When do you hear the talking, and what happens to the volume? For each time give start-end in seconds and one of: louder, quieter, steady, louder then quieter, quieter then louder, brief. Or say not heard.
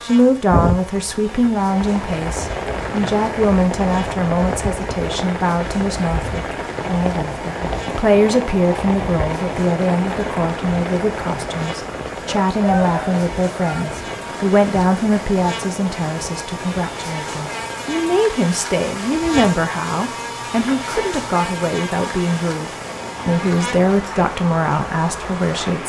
0.0-25.8 steady.